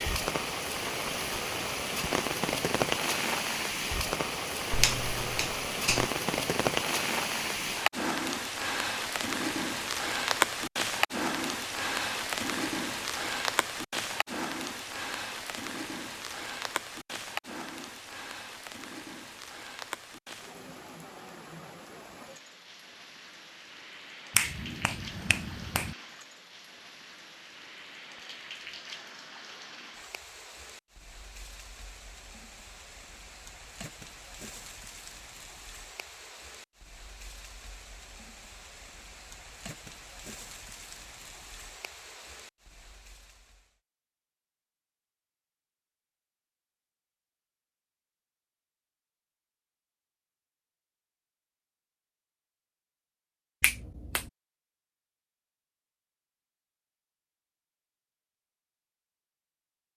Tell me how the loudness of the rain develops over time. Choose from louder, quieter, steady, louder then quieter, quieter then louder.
quieter.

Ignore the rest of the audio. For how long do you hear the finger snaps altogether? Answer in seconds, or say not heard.
4 s.